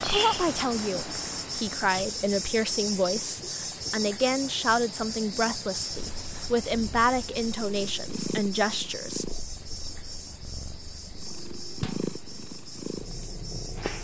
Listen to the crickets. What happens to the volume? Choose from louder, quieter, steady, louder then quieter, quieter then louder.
quieter.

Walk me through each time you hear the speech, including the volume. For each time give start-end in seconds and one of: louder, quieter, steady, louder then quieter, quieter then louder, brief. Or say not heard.
0.0-9.2 steady.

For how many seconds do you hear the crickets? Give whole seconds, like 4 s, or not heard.
14 s.